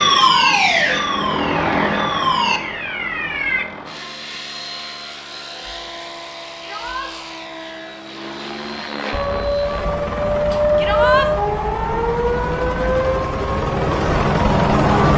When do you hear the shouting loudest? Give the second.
11 s.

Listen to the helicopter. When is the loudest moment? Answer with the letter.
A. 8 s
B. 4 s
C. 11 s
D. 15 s
D.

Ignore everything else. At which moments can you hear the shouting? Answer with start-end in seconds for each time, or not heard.
0.1-0.6, 6.6-7.1, 10.8-11.3.